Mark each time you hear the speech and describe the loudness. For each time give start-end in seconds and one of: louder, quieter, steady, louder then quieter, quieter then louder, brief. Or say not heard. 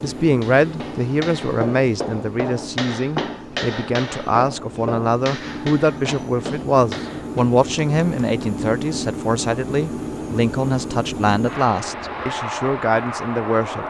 0.0-13.8 steady.